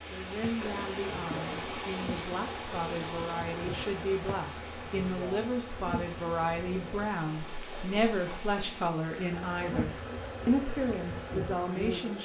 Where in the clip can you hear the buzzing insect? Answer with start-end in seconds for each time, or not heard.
0.0-7.1, 9.4-12.1.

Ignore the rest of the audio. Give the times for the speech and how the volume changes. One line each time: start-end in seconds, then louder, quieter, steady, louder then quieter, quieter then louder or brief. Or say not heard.
0.1-12.1 louder.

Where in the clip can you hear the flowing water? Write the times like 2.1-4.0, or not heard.
0.0-12.1.